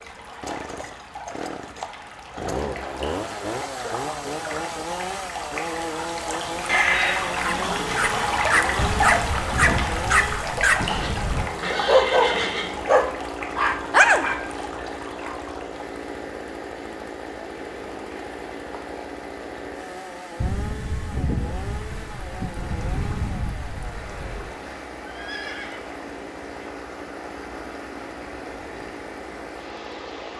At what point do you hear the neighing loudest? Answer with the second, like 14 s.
7 s.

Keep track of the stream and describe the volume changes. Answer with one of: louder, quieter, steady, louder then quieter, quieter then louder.
louder then quieter.